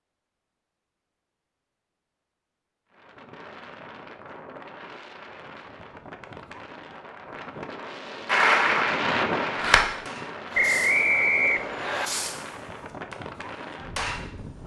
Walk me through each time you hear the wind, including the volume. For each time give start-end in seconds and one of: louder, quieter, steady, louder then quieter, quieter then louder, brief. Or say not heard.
2.9-14.6 louder then quieter.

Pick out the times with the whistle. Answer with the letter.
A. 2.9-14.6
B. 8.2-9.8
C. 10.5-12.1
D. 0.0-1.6
C.